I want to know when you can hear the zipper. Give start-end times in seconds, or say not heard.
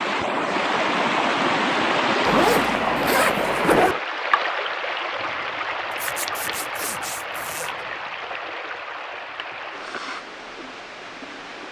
2.2-4.0, 6.0-7.7.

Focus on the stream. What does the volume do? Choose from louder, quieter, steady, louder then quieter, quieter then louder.
quieter.